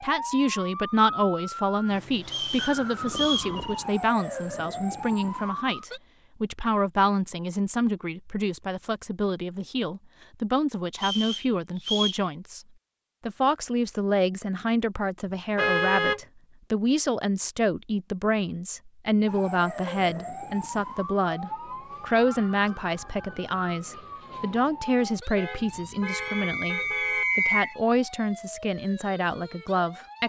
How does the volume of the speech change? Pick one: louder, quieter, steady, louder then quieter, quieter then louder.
steady.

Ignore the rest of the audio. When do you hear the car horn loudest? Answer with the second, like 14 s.
16 s.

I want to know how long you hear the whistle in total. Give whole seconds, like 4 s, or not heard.
4 s.